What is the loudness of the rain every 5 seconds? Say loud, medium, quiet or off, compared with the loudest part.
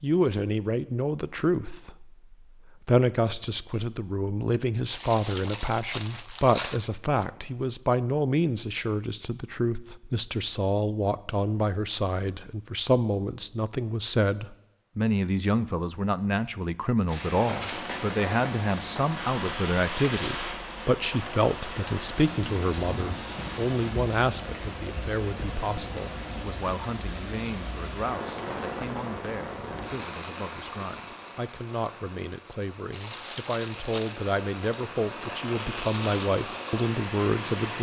off, off, off, loud, loud, loud, medium, loud.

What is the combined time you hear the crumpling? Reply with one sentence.
The crumpling can be heard for 3 seconds in total.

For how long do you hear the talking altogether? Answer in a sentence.
The talking can be heard for 38 seconds in total.